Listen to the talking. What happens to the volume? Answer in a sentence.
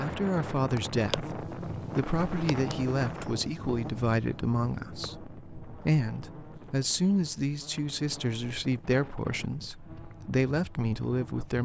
The volume of the talking stays about the same.